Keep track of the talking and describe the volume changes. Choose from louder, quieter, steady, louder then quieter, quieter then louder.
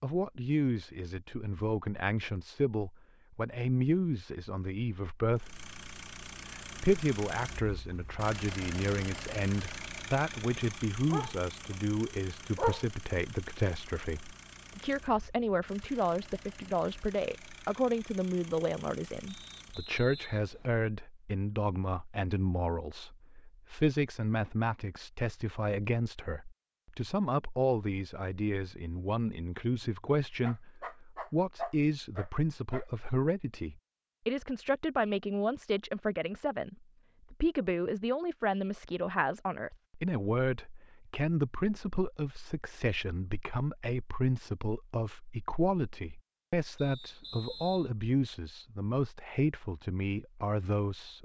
steady.